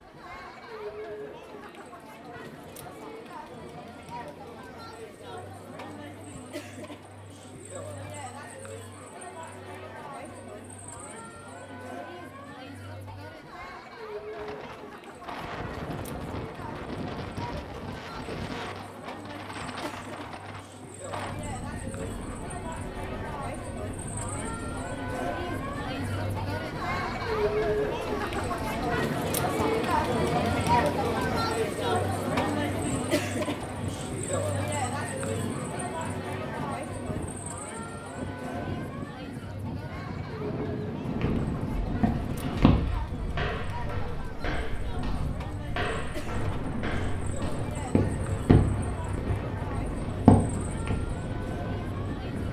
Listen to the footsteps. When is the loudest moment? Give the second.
50 s.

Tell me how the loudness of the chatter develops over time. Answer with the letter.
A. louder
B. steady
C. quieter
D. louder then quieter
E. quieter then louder
D.